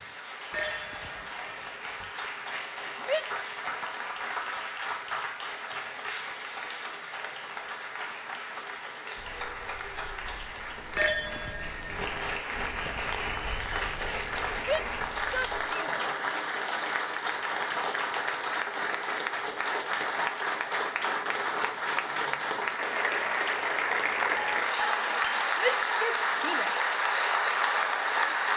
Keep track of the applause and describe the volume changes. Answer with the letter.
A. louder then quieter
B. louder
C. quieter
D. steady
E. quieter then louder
B.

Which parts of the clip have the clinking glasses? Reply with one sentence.
You can hear the clinking glasses from 0.5 to 2.0 s, from 10.9 to 11.9 s and from 24.4 to 25.4 s.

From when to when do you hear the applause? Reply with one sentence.
You can hear the applause from 0.0 to 28.5 s.